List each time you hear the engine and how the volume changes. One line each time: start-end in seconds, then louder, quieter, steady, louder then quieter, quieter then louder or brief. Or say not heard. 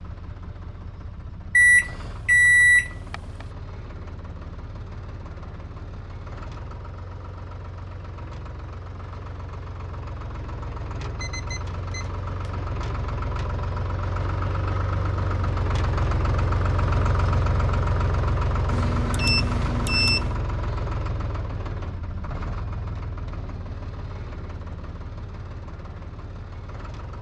0.0-27.1 louder then quieter.